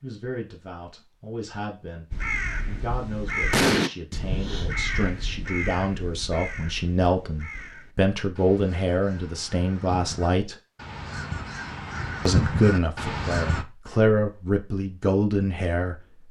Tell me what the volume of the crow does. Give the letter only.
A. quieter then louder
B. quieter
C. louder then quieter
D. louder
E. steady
A.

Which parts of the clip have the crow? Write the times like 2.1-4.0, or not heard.
2.1-13.7.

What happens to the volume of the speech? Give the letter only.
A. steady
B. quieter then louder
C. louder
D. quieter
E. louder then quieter
C.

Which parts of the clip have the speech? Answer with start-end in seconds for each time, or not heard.
0.0-10.6, 12.2-16.2.